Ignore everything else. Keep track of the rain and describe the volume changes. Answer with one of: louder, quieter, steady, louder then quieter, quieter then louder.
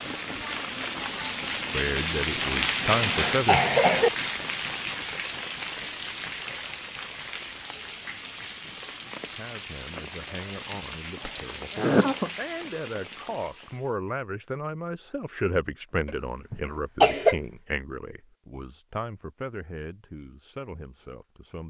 quieter.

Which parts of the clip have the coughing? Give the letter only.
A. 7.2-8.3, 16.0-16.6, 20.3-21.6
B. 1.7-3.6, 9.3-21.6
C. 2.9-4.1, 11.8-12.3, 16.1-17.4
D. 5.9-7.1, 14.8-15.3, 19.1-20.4
C.